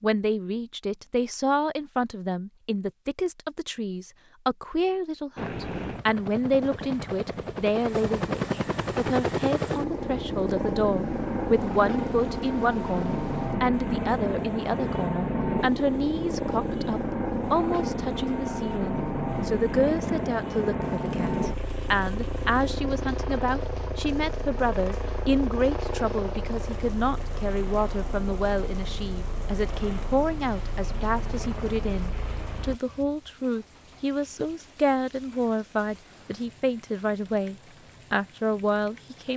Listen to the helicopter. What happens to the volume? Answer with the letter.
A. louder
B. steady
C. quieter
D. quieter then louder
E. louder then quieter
C.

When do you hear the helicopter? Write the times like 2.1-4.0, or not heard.
5.3-32.8.